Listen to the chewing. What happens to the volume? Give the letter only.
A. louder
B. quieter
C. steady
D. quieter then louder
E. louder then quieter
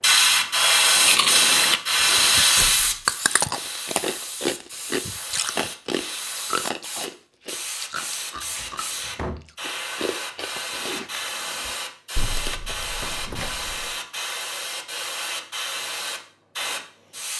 B.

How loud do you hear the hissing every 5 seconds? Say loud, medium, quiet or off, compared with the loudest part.
loud, quiet, medium, medium.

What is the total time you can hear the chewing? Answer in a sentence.
The chewing can be heard for 11 seconds in total.